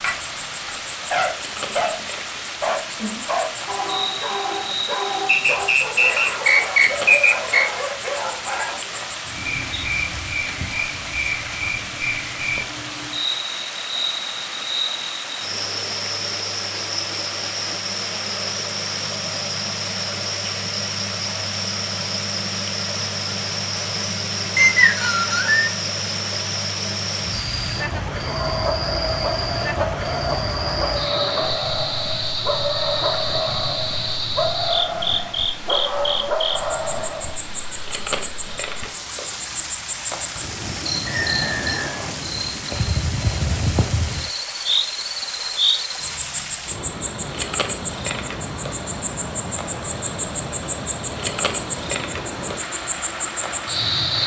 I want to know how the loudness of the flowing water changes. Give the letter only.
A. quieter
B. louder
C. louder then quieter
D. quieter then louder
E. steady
E.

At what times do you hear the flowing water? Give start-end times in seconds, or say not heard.
0.0-54.2.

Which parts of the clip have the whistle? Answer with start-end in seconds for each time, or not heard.
5.2-7.7, 24.6-25.7, 41.0-42.1.